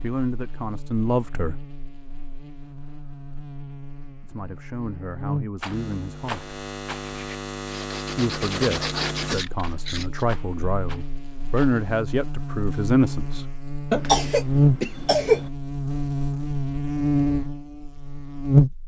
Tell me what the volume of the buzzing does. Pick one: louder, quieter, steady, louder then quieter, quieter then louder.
louder.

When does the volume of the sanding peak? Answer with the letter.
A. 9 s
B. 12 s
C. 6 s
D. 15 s
A.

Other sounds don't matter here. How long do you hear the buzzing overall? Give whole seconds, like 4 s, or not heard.
19 s.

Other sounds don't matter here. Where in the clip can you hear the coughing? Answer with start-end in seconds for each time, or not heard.
13.9-15.5.